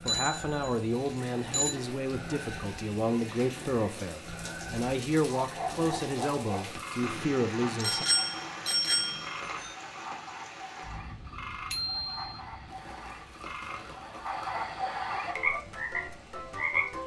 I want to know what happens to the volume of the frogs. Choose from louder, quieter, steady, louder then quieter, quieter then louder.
louder.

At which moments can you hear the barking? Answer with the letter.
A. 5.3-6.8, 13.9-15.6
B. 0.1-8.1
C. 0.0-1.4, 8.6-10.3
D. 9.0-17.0
A.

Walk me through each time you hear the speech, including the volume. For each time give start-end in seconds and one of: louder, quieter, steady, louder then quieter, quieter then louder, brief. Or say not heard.
0.1-8.1 steady.